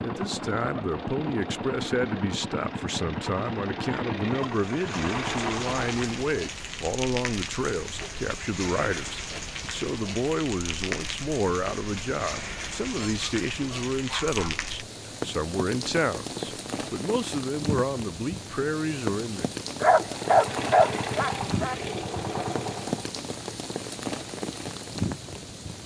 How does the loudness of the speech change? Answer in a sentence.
The volume of the speech stays about the same.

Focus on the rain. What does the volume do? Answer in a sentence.
The volume of the rain stays about the same.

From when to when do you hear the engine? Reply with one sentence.
The engine can be heard from 0.0 to 6.2 s and from 20.0 to 23.1 s.